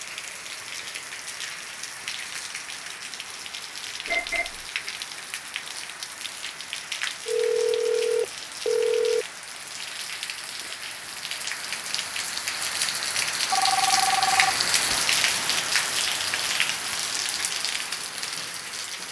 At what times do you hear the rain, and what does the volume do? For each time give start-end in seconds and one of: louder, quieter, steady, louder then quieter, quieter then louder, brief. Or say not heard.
0.0-19.0 louder.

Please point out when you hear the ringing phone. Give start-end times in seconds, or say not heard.
4.0-4.7, 7.2-9.2, 13.5-14.7.